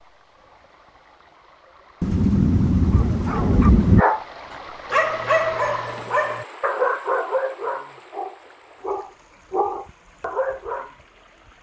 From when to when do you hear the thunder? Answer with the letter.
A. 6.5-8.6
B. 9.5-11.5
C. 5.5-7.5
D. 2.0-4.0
D.